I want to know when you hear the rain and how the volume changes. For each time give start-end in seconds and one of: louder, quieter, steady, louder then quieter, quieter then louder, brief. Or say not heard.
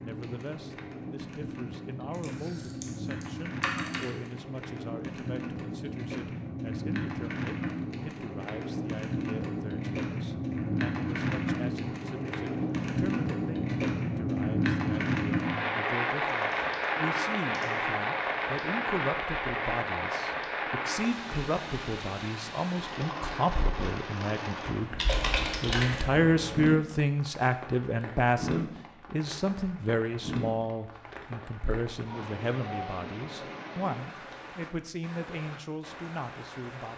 0.0-36.9 louder then quieter.